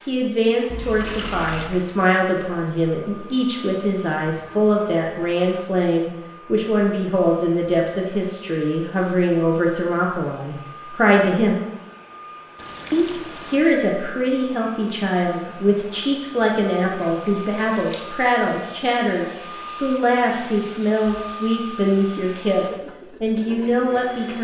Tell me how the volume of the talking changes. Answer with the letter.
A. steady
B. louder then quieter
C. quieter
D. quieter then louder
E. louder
A.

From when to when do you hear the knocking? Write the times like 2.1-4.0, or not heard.
not heard.